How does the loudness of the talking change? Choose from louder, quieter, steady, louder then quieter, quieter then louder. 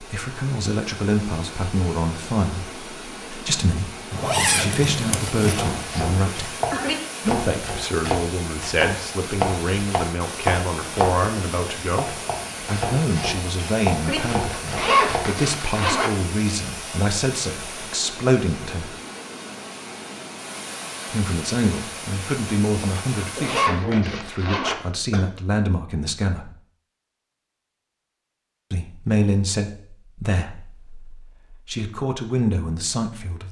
steady.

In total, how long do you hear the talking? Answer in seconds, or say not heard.
28 s.